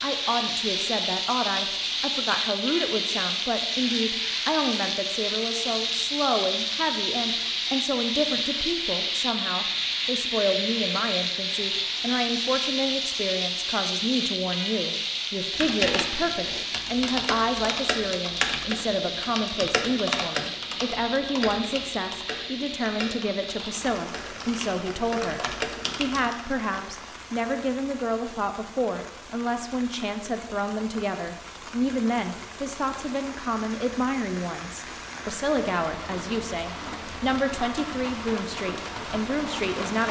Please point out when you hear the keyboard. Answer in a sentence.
You can hear the keyboard from 15.5 to 26.4 s.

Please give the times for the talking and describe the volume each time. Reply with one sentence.
You can hear the talking from 0.0 to 40.0 s, at a steady volume.